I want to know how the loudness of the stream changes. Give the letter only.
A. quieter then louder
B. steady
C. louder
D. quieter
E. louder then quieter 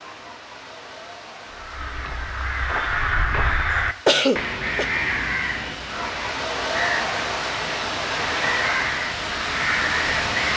C.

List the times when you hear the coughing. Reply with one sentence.
The coughing can be heard from 3.7 to 4.8 s.